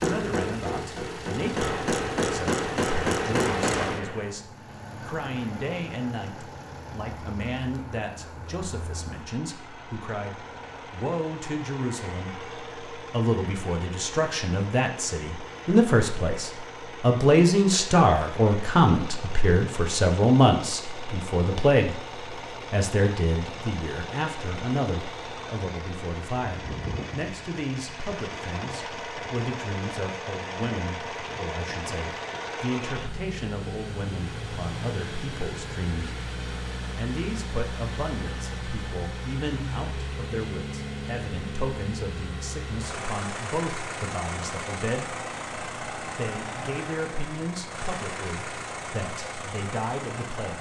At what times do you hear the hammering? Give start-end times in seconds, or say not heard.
0.0-4.3.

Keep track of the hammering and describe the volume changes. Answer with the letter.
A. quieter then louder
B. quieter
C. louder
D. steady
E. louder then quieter
C.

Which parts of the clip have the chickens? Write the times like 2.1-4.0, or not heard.
not heard.